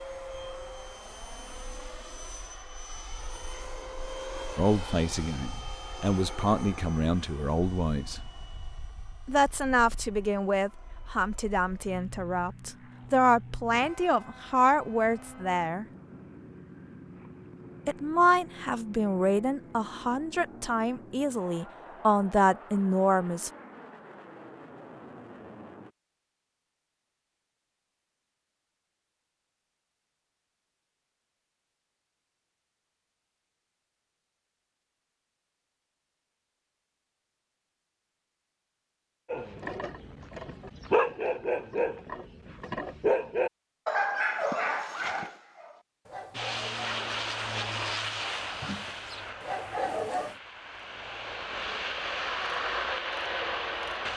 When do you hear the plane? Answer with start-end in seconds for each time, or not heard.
0.0-25.9, 46.3-54.1.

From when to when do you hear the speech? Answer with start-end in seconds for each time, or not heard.
4.5-8.2, 9.2-15.8, 17.9-23.5.